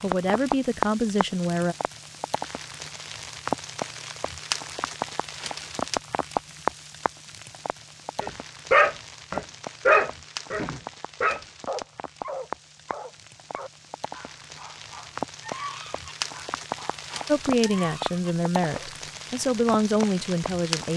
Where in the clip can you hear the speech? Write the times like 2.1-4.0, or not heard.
0.0-1.8, 17.2-20.9.